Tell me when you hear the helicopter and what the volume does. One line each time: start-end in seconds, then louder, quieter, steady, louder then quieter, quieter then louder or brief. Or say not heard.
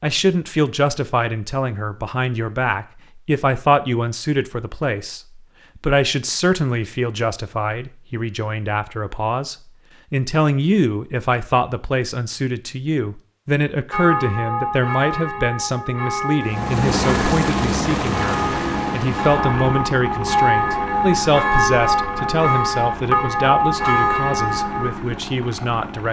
16.4-26.0 quieter.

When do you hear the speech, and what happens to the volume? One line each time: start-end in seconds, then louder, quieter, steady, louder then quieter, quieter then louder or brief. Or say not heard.
0.0-26.0 steady.